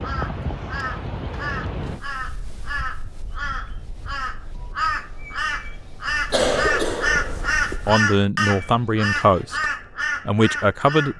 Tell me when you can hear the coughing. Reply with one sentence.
You can hear the coughing from 6.3 to 7.8 s.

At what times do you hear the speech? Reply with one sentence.
You can hear the speech from 7.8 to 11.1 s.